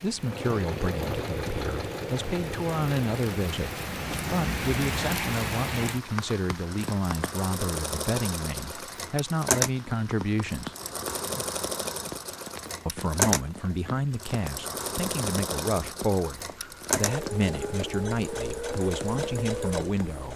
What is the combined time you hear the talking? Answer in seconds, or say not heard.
18 s.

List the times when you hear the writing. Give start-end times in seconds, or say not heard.
not heard.